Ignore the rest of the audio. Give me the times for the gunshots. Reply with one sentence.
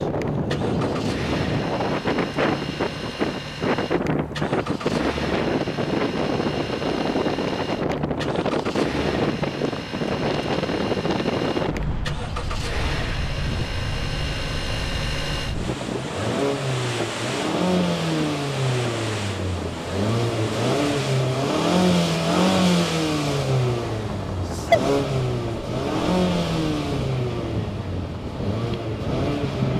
You can't hear the gunshots here.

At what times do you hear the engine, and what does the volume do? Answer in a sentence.
The engine can be heard from 0.0 to 29.7 s, getting louder.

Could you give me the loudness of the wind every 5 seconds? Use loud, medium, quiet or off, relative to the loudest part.
loud, loud, loud, medium, medium, medium.